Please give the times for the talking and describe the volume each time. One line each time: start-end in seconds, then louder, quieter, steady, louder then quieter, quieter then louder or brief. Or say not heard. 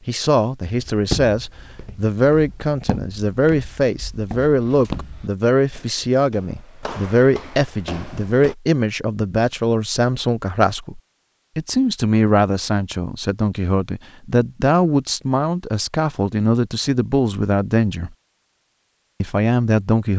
0.1-18.1 steady
19.2-20.1 brief.